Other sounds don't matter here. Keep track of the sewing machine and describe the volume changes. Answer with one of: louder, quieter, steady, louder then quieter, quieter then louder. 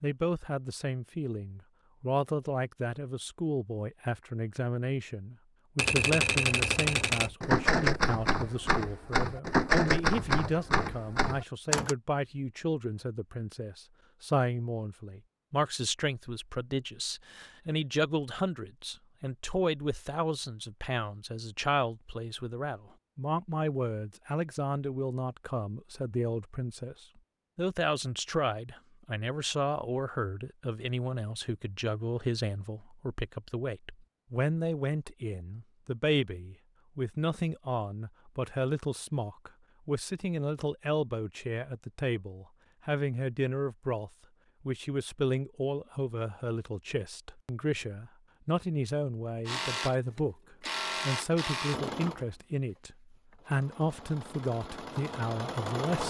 quieter then louder.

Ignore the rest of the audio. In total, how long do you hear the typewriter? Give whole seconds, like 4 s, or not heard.
6 s.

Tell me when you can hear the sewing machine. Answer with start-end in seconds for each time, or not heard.
49.5-56.0.